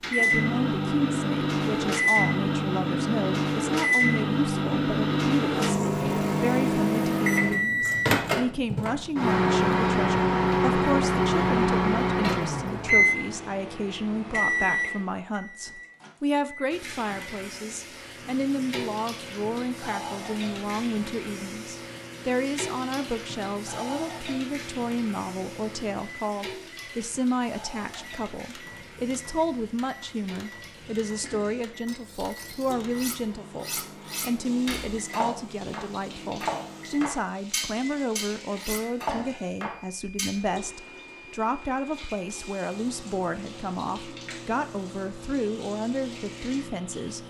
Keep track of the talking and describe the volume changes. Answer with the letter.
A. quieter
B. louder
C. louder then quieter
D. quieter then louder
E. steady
E.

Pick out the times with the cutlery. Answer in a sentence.
The cutlery can be heard from 31.9 to 40.4 s.